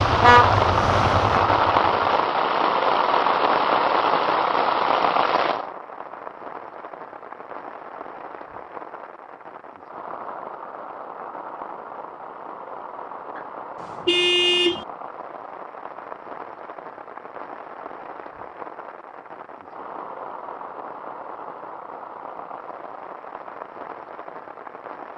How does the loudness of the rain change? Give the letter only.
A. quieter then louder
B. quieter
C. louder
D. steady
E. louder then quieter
B.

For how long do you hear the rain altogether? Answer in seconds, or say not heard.
25 s.